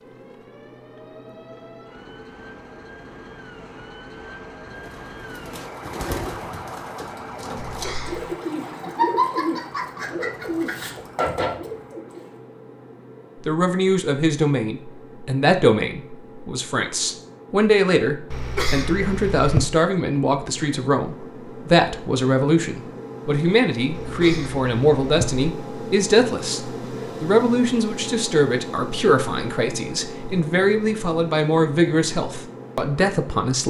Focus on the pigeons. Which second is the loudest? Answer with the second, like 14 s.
9 s.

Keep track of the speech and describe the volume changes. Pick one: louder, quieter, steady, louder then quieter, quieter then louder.
steady.